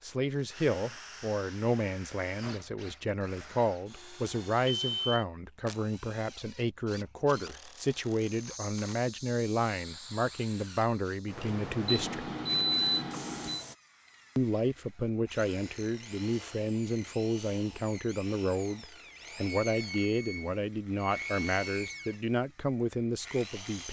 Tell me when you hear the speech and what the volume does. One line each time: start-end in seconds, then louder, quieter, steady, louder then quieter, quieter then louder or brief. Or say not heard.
0.0-12.3 steady
14.3-23.8 steady.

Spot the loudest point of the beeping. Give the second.
13 s.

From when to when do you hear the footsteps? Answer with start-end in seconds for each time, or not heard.
not heard.